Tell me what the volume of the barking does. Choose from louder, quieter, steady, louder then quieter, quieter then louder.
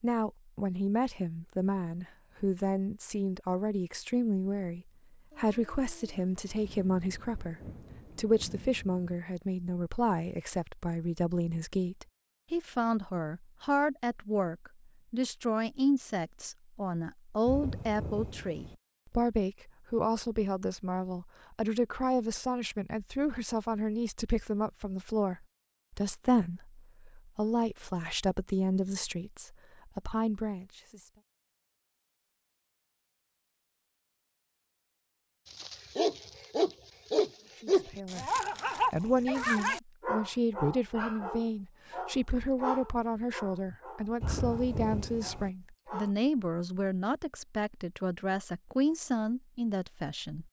quieter.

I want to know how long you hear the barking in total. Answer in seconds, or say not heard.
11 s.